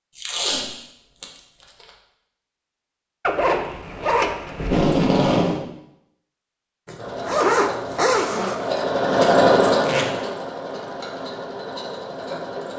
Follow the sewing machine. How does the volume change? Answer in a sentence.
The loudness of the sewing machine goes up, then down.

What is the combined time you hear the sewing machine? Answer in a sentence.
The sewing machine can be heard for 6 seconds in total.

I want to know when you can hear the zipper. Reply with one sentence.
The zipper can be heard from 3.2 to 4.8 s and from 6.8 to 8.8 s.